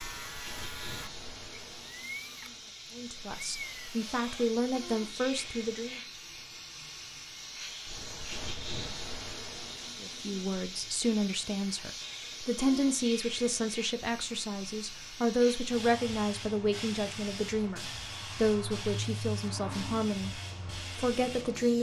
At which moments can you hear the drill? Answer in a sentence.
You can hear the drill from 0.0 to 5.5 s.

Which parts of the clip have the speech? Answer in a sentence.
You can hear the speech from 3.0 to 6.0 s and from 10.0 to 21.7 s.